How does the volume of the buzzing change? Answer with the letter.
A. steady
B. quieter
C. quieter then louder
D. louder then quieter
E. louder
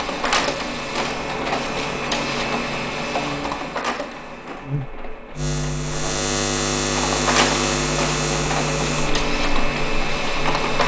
D.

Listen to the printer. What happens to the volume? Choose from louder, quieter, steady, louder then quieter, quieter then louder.
quieter then louder.